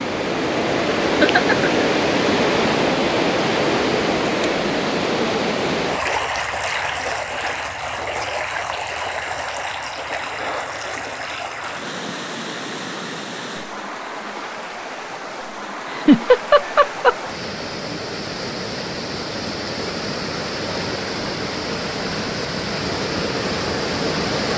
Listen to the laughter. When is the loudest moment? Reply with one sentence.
The volume of the laughter peaks at 16 seconds.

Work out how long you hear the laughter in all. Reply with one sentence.
The laughter can be heard for 2 seconds in total.